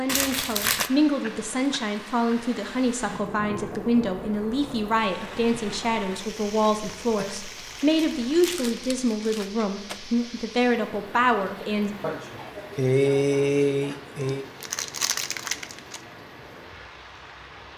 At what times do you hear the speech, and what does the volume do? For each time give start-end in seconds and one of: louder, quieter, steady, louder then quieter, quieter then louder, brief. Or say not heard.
0.0-11.9 steady.